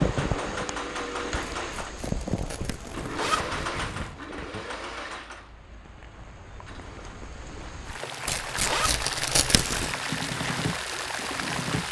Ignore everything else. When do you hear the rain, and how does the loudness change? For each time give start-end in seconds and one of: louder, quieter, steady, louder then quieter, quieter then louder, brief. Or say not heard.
0.0-11.8 quieter then louder.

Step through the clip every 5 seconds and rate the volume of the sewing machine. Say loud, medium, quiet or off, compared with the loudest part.
loud, medium, loud.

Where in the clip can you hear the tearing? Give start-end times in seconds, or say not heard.
1.6-4.2, 8.2-9.9.